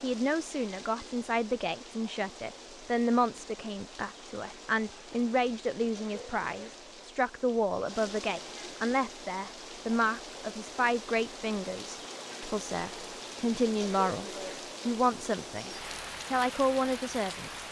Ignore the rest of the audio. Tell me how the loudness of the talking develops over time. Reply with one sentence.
The volume of the talking stays about the same.